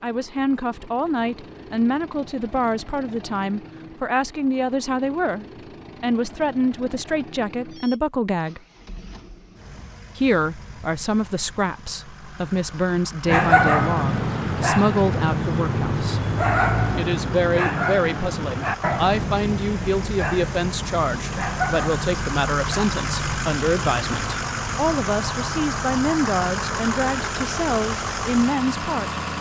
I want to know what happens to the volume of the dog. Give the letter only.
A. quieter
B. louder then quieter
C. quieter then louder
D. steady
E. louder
A.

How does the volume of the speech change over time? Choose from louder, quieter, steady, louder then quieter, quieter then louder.
steady.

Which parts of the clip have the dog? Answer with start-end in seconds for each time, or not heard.
13.2-24.4.